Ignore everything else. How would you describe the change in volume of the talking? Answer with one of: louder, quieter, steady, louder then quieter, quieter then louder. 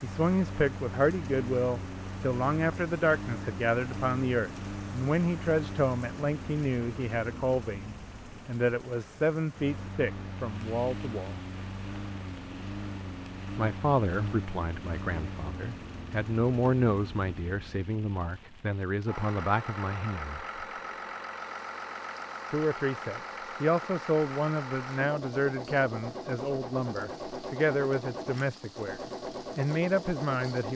steady.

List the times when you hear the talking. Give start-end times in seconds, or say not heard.
0.0-11.4, 13.6-20.4, 22.5-30.7.